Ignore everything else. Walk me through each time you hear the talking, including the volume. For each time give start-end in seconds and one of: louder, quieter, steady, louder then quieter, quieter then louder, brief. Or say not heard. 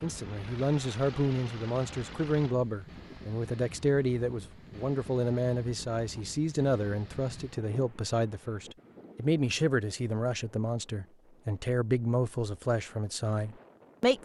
0.0-14.2 steady.